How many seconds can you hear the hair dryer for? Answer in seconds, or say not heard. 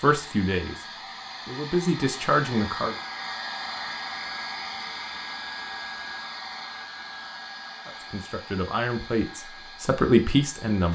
11 s.